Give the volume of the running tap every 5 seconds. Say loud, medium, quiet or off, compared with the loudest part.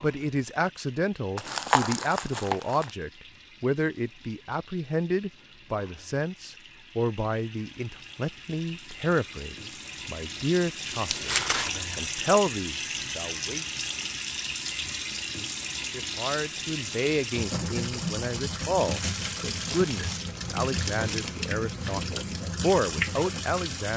quiet, quiet, loud, loud, loud.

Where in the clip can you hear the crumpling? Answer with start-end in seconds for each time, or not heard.
1.4-2.9, 11.1-11.7, 18.9-21.4.